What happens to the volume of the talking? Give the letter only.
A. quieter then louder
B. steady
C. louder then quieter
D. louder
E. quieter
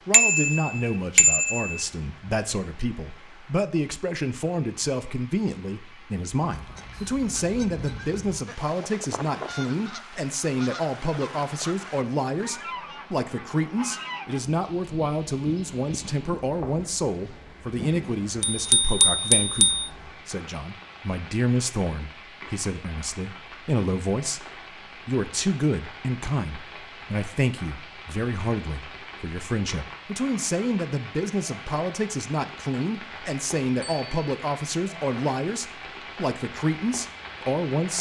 B.